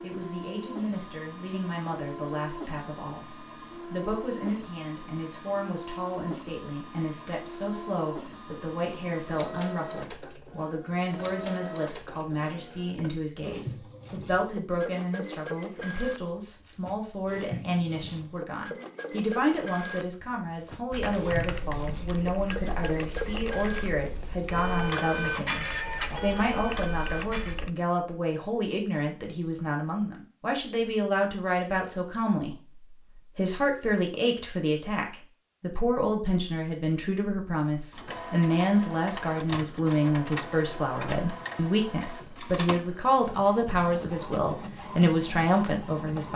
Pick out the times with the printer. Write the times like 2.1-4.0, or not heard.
0.0-27.6, 37.9-46.3.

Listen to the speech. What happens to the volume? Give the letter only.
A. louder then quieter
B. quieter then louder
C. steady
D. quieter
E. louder
E.